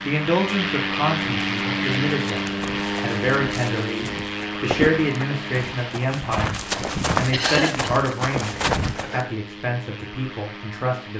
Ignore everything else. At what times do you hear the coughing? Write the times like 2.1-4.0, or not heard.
7.3-7.8.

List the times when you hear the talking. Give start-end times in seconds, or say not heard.
0.0-11.1.